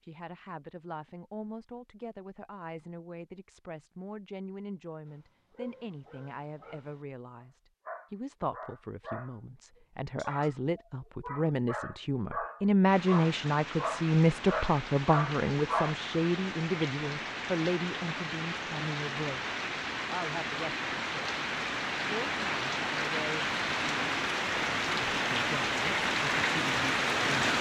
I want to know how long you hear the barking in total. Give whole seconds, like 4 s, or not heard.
11 s.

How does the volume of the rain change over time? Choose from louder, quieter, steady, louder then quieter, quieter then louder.
louder.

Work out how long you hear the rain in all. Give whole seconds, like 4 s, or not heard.
15 s.